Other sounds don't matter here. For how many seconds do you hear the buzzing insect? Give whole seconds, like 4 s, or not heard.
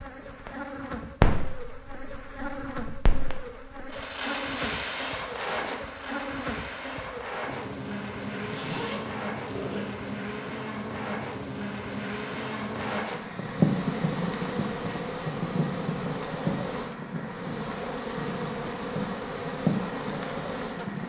21 s.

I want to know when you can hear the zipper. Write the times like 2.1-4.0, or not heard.
8.3-9.8.